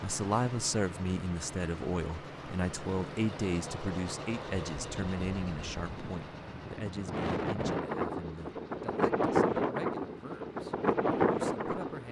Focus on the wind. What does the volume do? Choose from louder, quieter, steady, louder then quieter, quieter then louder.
louder.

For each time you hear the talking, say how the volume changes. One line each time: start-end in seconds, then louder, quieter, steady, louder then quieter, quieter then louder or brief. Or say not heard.
0.0-12.0 quieter.